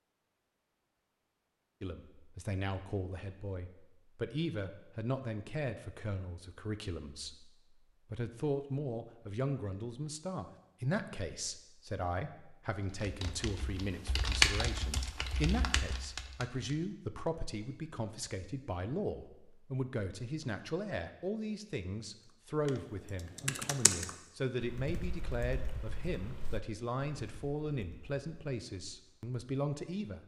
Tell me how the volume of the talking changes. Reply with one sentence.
The volume of the talking stays about the same.